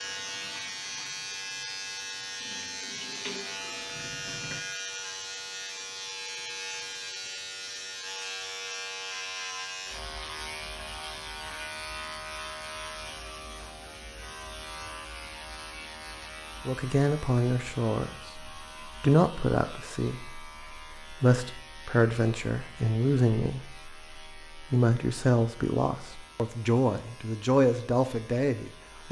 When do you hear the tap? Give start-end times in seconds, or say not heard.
0.0-4.6.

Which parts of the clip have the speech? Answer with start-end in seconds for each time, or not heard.
16.6-29.0.